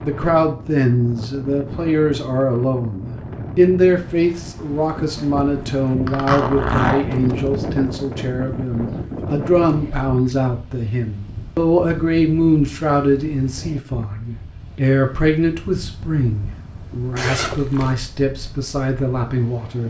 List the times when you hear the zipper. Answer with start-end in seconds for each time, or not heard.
6.0-7.0, 17.1-18.0.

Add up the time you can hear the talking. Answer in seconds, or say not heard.
20 s.